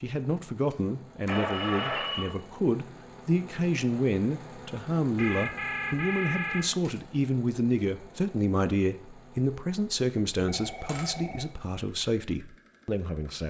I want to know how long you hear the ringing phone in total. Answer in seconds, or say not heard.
4 s.